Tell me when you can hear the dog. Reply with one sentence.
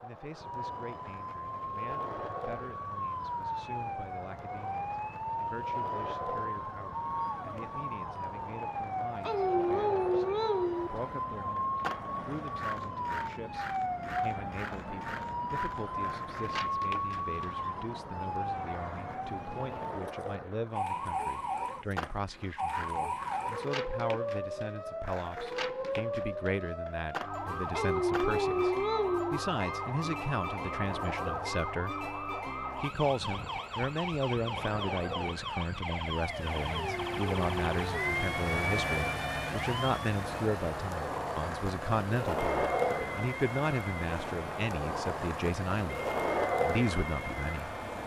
You can hear the dog from 9.2 to 10.9 s, from 27.7 to 29.4 s and from 36.6 to 38.1 s.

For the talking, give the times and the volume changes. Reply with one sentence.
The talking can be heard from 0.0 to 47.7 s, getting louder.